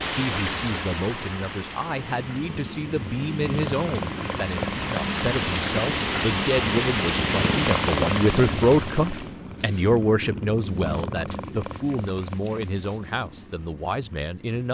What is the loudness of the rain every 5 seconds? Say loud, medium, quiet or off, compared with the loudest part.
medium, loud, off.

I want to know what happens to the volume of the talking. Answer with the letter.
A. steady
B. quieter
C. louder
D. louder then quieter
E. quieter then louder
D.